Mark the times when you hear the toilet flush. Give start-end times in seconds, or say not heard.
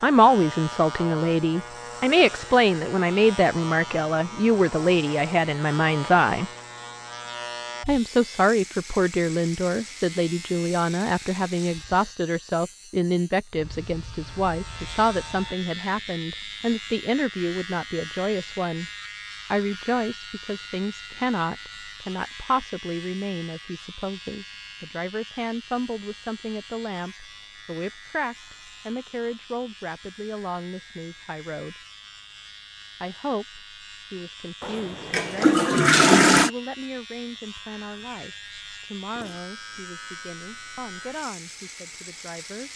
34.6-36.5.